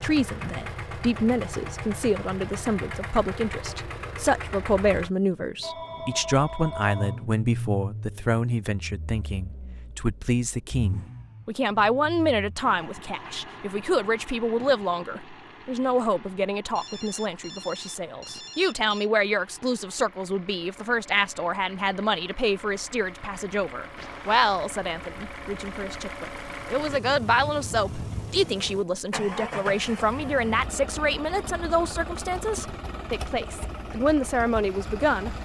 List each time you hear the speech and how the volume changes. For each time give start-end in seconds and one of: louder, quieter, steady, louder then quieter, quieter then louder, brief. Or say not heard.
0.0-35.4 steady.